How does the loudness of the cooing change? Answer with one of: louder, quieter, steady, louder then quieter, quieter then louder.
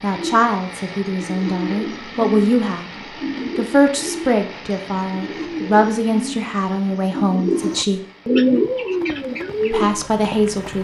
louder.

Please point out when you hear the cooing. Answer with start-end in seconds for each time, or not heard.
0.1-10.1.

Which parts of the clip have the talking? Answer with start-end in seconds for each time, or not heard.
0.0-2.9, 3.5-8.0, 9.7-10.8.